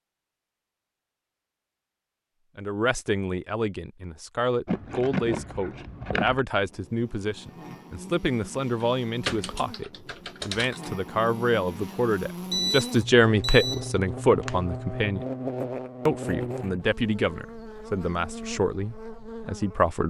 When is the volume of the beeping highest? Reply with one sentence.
The loudest moment of the beeping is at 13 seconds.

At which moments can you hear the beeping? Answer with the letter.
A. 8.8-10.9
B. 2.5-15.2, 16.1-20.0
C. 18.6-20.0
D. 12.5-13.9
D.